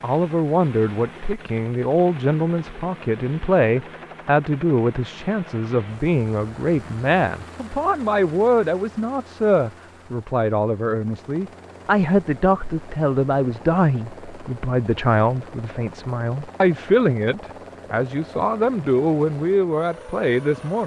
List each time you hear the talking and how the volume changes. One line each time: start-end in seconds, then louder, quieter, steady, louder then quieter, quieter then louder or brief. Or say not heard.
0.0-20.8 steady.